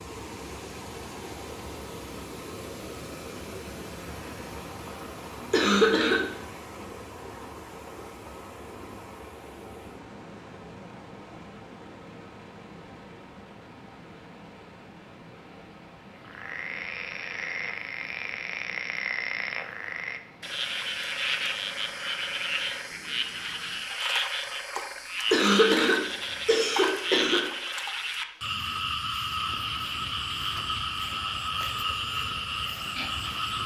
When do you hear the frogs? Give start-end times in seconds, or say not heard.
16.1-33.6.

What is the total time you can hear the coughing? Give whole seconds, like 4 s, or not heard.
3 s.